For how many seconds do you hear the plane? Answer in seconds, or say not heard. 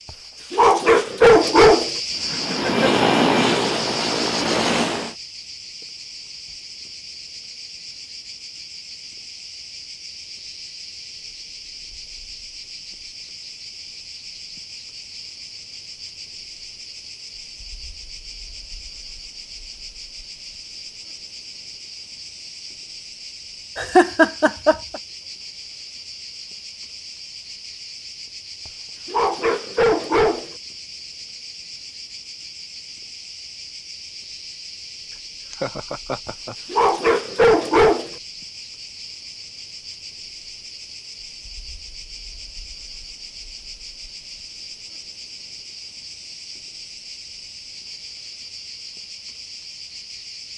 3 s.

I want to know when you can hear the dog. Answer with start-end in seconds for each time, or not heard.
0.5-1.9, 29.1-30.5, 36.7-38.1.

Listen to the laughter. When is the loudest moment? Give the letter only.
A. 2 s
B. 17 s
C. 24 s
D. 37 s
C.